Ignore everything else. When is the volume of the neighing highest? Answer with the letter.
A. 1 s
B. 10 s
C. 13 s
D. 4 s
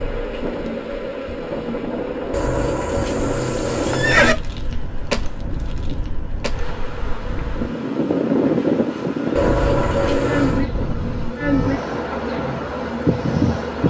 D.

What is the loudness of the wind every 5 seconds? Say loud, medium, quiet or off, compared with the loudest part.
medium, loud, loud.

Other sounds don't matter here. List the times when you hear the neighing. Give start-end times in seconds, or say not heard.
2.3-4.3, 9.3-10.7.